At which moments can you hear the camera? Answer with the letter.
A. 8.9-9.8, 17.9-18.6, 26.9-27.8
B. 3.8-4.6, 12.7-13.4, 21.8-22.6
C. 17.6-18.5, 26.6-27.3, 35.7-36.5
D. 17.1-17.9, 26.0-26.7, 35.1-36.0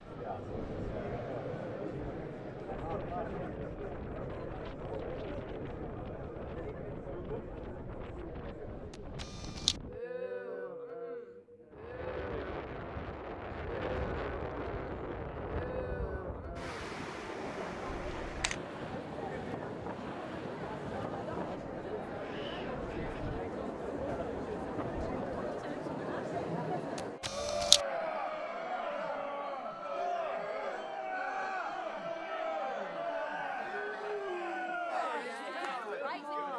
A.